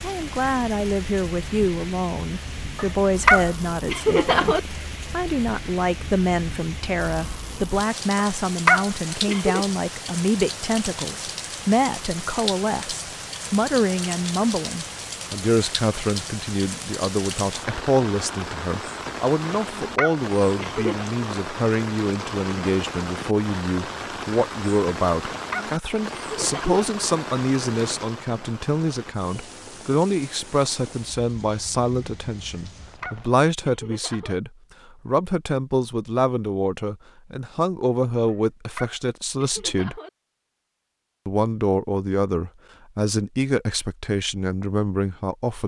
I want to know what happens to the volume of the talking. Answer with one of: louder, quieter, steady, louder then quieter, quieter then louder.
steady.